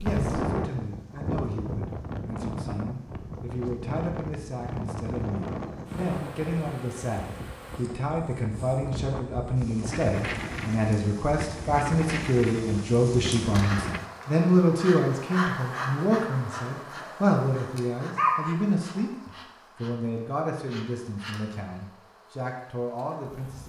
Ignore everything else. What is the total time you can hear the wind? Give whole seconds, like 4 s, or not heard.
14 s.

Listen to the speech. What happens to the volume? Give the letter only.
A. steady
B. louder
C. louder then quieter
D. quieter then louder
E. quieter
C.